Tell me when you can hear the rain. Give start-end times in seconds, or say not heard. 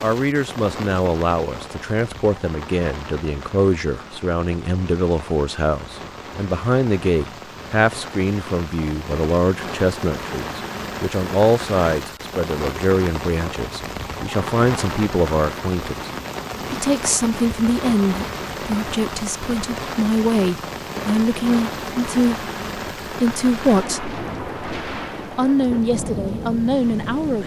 0.0-27.4.